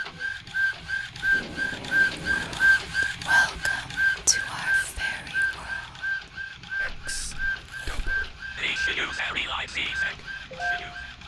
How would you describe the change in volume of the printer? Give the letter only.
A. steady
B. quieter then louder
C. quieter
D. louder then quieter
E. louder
C.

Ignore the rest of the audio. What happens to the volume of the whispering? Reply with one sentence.
The loudness of the whispering goes down, then up.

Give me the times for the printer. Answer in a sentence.
The printer can be heard from 0.0 to 11.2 s.